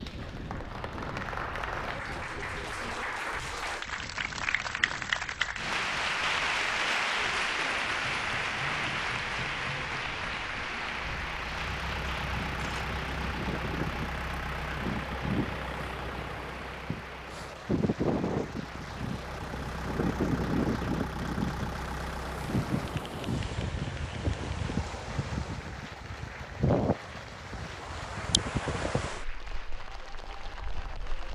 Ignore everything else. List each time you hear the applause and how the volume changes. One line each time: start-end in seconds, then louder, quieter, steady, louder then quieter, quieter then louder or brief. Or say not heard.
0.0-31.3 quieter.